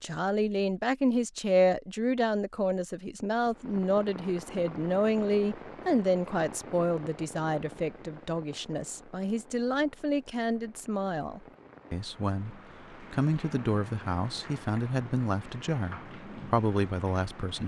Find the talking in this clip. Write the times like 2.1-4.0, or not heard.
0.0-17.6.